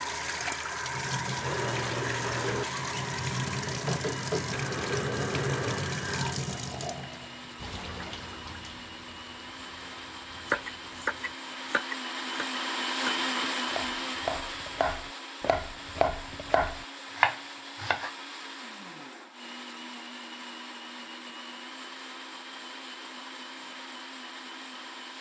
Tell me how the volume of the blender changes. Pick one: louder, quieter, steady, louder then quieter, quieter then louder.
louder then quieter.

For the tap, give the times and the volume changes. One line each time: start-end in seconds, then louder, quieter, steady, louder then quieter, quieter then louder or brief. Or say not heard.
0.0-11.3 quieter.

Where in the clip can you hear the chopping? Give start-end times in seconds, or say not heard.
10.4-18.1.